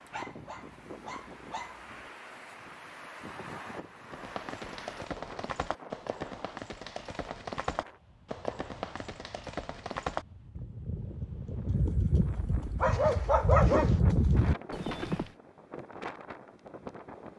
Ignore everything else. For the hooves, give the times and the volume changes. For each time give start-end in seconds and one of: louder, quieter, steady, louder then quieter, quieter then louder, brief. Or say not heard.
4.1-15.2 louder.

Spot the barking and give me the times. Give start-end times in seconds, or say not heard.
0.1-2.1, 12.8-14.0.